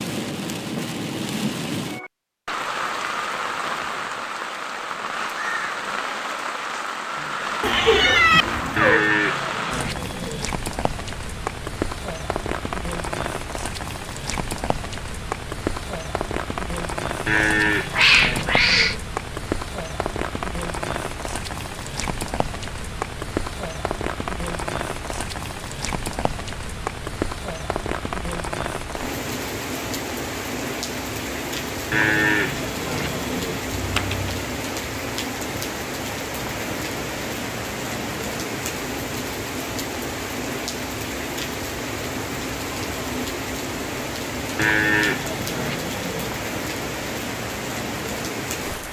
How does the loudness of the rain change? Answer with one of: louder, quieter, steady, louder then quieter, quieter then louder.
steady.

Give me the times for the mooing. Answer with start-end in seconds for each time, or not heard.
8.8-10.4, 17.2-19.0, 31.9-33.6, 44.5-46.3.